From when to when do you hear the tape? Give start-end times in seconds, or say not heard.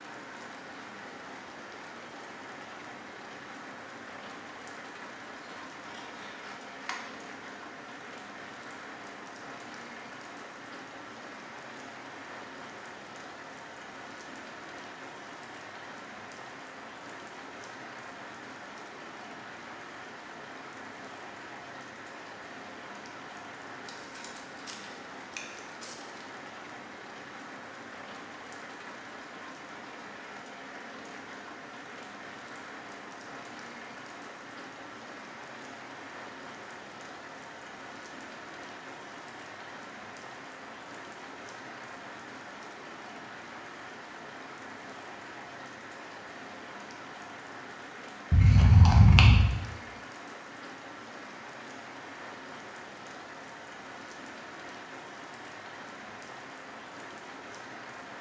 not heard.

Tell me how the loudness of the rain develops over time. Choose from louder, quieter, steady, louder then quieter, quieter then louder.
steady.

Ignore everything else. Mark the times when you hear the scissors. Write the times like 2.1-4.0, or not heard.
5.5-7.0, 23.9-26.2, 48.3-49.5.